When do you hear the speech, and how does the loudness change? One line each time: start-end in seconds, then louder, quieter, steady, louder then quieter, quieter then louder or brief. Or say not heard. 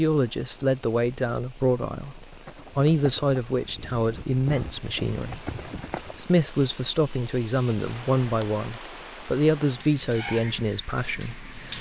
0.0-11.7 steady.